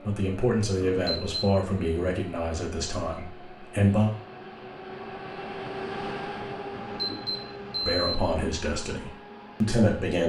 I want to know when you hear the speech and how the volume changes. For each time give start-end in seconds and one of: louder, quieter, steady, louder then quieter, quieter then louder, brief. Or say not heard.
0.0-4.1 quieter
7.8-10.2 brief.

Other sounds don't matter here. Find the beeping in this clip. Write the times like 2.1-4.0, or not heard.
0.8-1.6, 6.7-8.2.